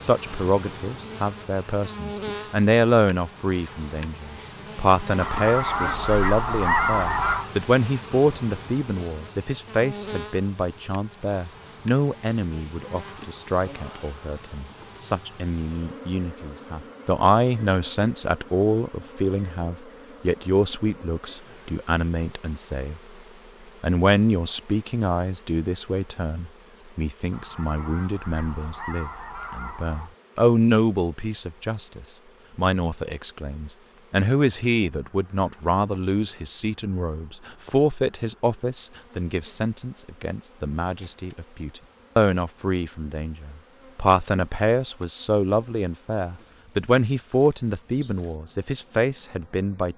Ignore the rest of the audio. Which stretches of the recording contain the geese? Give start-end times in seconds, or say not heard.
5.2-7.5, 27.3-30.1.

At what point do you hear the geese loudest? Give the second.
7 s.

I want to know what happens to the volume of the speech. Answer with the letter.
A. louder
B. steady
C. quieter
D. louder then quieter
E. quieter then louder
B.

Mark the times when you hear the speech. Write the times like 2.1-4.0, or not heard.
0.0-23.0, 23.8-49.9.